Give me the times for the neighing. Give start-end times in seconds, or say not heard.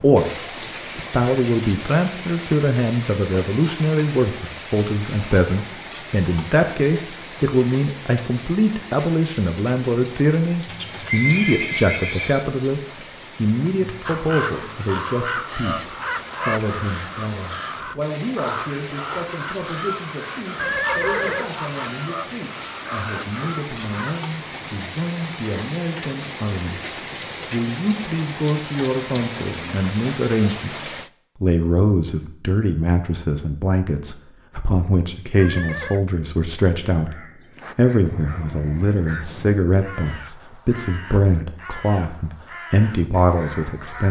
10.7-12.4, 20.6-21.5, 35.4-36.0.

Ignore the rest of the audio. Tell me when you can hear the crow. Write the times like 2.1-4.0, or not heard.
14.1-24.2, 37.0-44.0.